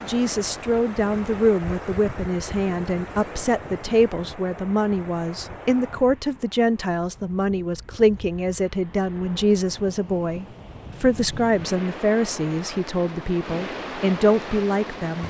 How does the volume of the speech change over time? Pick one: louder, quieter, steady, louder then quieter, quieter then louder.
steady.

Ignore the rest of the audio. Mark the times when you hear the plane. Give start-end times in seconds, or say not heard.
not heard.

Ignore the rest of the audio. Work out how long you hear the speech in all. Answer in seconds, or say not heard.
15 s.